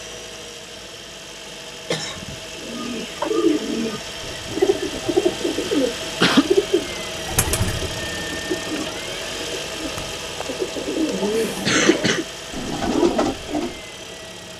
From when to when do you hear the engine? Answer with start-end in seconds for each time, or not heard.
0.0-14.5.